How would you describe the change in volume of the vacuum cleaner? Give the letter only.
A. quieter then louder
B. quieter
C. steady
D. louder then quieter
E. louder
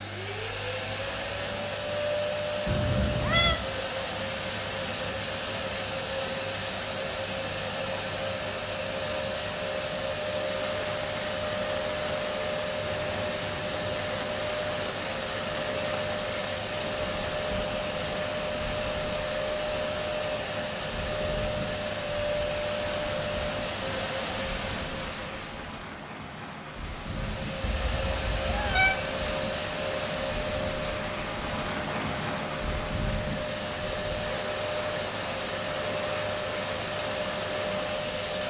C.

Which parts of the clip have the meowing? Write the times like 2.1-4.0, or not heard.
2.6-3.6, 27.6-28.9.